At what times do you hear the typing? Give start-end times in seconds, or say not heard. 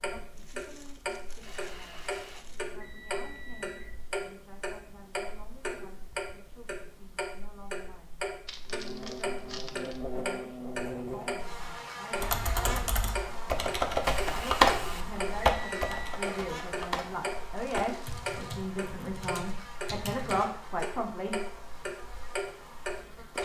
12.2-20.4.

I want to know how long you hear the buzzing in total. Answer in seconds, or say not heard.
15 s.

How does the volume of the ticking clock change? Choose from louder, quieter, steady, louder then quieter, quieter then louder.
steady.